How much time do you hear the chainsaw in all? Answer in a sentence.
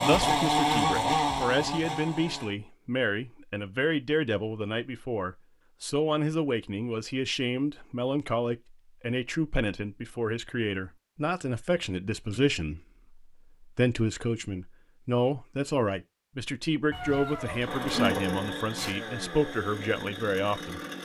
You can hear the chainsaw for 6 seconds altogether.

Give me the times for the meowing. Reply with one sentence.
You can hear the meowing from 16.9 to 18.1 s.